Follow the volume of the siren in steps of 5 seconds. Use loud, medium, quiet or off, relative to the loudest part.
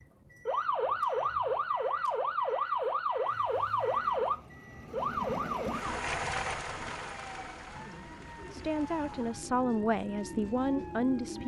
loud, medium, quiet.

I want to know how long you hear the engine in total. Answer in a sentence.
You can hear the engine for 8 seconds altogether.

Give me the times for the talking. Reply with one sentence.
You can hear the talking from 7.8 to 11.4 s.